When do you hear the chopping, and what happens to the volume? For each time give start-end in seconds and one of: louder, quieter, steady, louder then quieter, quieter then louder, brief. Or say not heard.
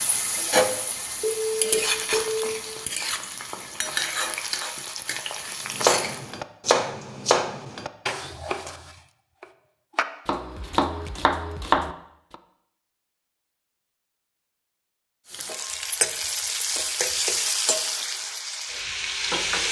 5.7-12.3 quieter then louder.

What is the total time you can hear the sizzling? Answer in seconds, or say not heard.
11 s.